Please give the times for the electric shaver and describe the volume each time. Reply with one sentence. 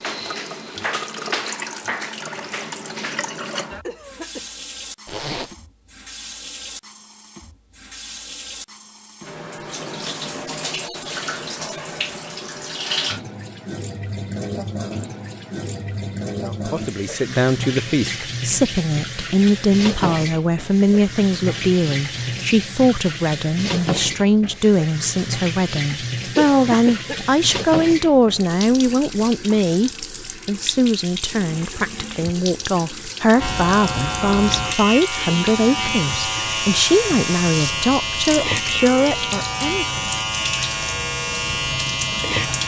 You can hear the electric shaver from 33.4 to 42.6 s, at a steady volume.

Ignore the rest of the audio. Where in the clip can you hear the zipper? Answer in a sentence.
The zipper can be heard from 5.0 to 5.5 s.